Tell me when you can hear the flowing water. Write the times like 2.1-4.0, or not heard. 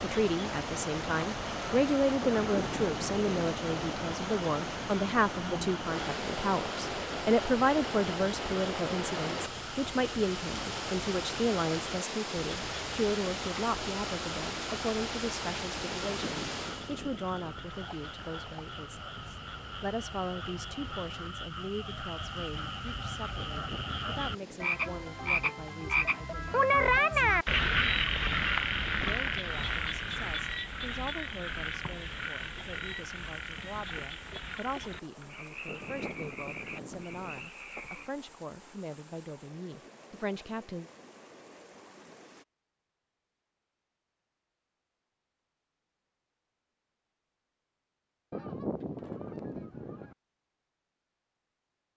0.0-42.5.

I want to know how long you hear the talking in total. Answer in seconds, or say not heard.
39 s.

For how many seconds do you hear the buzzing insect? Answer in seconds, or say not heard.
not heard.